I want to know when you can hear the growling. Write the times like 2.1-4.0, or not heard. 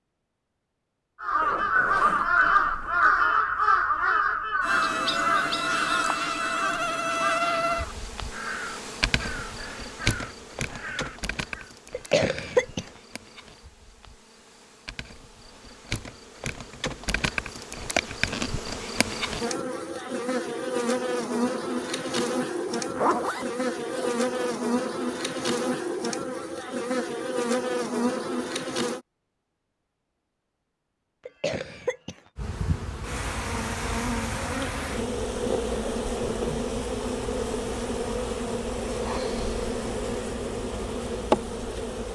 not heard.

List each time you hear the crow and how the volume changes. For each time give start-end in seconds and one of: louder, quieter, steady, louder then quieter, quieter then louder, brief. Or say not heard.
1.2-11.8 quieter.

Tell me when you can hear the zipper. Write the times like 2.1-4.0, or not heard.
1.4-3.1, 22.6-24.6, 35.5-36.6.